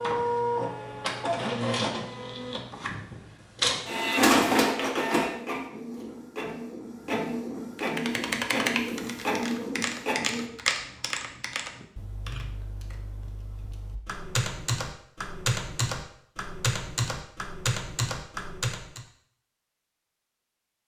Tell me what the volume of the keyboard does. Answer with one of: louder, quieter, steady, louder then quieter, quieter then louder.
quieter then louder.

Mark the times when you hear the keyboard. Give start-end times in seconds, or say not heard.
7.8-19.1.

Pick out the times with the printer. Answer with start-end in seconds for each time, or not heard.
0.0-10.4.